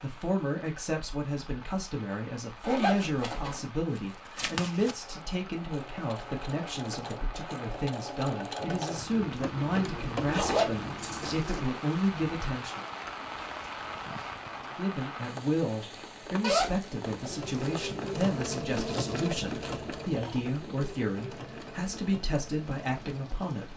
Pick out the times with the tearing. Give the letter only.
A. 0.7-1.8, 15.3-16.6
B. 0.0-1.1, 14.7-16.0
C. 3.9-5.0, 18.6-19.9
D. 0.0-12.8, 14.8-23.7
C.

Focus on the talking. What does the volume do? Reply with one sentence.
The volume of the talking stays about the same.